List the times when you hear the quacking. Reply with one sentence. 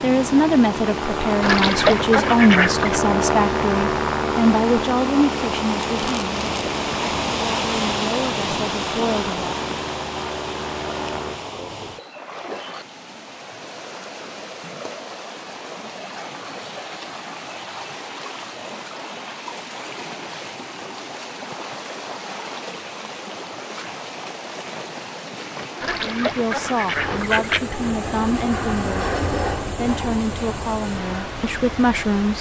You can hear the quacking from 1.4 to 3.0 s and from 25.8 to 27.7 s.